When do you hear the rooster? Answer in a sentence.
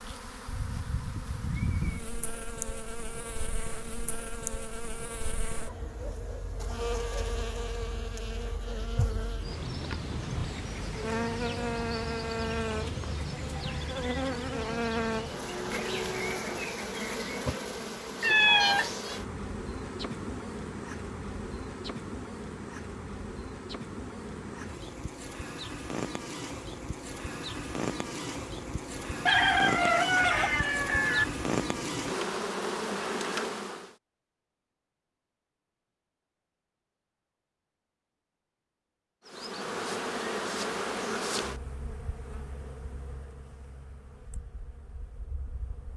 You can hear the rooster from 29.2 to 31.2 s.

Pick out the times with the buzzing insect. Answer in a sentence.
You can hear the buzzing insect from 0.0 to 34.0 s and from 39.2 to 45.9 s.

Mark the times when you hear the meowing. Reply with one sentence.
You can hear the meowing from 18.2 to 18.9 s.